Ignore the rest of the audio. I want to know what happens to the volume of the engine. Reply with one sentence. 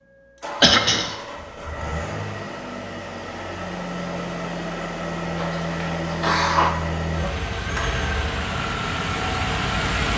The volume of the engine goes up.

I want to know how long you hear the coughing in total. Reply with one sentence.
The coughing can be heard for 2 seconds in total.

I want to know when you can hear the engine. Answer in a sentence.
The engine can be heard from 0.0 to 10.1 s.